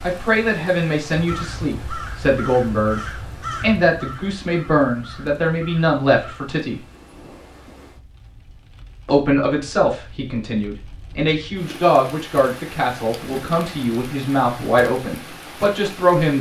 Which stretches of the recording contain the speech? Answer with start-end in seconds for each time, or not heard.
0.0-6.8, 9.1-16.3.